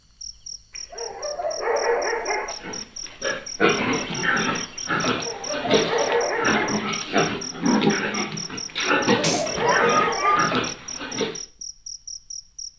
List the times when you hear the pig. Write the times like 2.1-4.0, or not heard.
2.5-11.4.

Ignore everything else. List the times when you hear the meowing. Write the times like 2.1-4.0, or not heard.
9.2-10.5.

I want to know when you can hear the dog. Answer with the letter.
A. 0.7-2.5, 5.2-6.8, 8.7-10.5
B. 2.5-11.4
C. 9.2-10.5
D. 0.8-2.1
A.